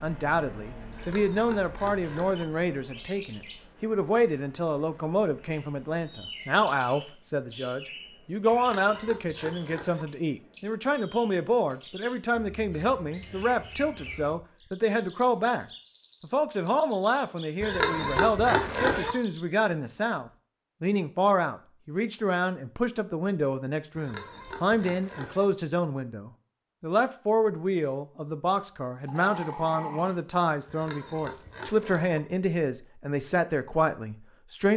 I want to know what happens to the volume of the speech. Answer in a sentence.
The loudness of the speech stays about the same.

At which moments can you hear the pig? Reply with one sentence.
The pig can be heard from 0.9 to 2.5 s, from 8.5 to 10.1 s, from 17.6 to 19.1 s, from 23.9 to 25.4 s and from 30.6 to 32.2 s.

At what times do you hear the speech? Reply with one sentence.
You can hear the speech from 0.0 to 34.7 s.